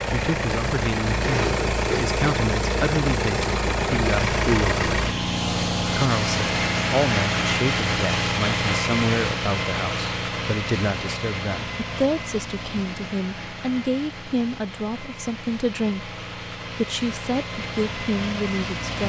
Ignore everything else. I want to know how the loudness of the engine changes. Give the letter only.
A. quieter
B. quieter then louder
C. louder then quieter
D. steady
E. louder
A.